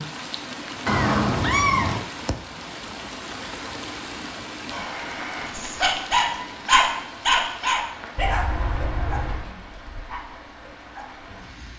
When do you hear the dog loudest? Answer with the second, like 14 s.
7 s.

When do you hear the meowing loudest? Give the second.
2 s.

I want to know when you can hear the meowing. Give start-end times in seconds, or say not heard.
0.8-2.0, 8.2-9.5.